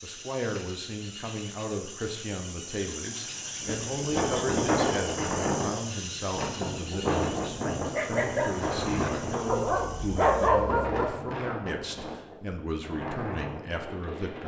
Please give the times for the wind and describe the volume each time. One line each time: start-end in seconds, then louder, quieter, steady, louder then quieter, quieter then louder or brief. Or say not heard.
3.6-14.4 quieter.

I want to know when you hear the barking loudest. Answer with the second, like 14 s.
10 s.